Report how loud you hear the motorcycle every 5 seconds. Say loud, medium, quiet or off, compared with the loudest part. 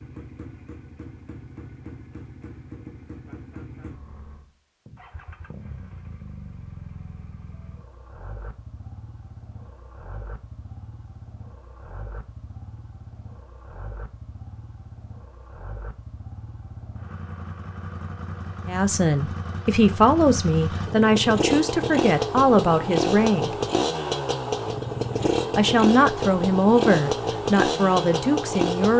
quiet, quiet, quiet, quiet, loud, loud.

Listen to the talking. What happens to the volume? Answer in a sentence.
The volume of the talking stays about the same.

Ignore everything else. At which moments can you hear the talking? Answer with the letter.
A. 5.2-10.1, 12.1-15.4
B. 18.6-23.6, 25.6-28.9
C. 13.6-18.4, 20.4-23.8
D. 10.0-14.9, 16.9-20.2
B.